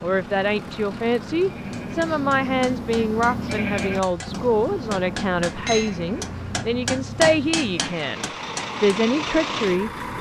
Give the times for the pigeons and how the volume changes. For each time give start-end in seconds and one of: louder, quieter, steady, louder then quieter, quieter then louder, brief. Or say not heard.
not heard.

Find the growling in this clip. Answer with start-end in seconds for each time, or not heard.
not heard.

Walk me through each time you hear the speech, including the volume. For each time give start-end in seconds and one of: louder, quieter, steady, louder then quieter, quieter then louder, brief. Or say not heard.
0.0-10.1 steady.